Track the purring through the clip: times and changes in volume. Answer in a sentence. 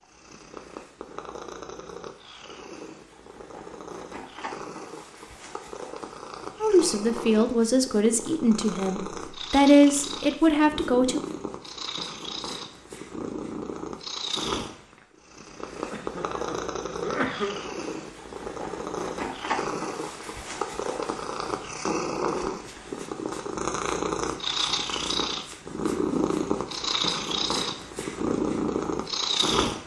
You can hear the purring from 0.0 to 29.8 s, getting louder.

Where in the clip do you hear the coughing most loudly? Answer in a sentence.
The volume of the coughing peaks at 17 seconds.